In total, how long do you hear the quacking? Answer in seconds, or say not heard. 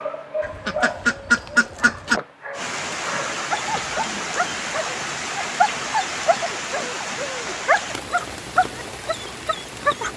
2 s.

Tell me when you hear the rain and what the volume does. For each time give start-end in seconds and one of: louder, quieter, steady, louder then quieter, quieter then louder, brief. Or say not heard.
2.5-10.1 quieter.